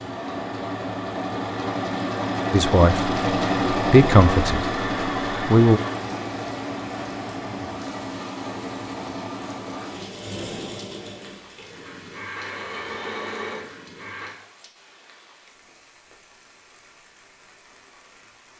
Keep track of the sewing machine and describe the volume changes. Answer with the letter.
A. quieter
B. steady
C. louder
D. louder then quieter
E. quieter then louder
A.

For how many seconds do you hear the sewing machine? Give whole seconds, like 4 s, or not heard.
14 s.